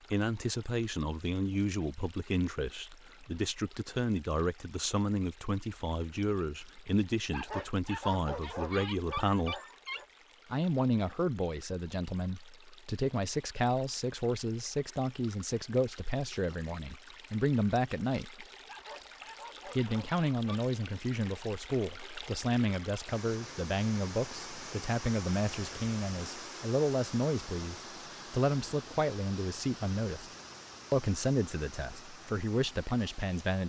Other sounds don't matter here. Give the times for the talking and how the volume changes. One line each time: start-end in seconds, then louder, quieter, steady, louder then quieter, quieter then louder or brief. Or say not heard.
0.1-9.6 steady
10.5-18.4 steady
19.7-30.3 steady
30.9-33.6 brief.